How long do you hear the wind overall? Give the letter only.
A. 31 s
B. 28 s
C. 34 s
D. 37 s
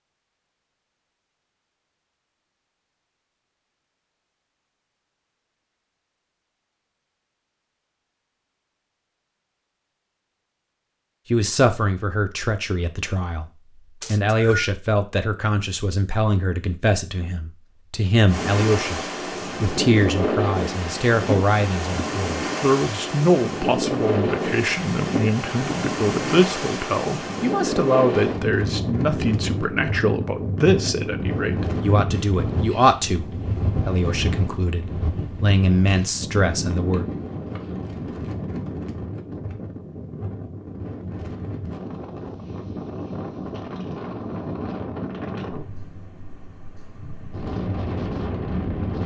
A.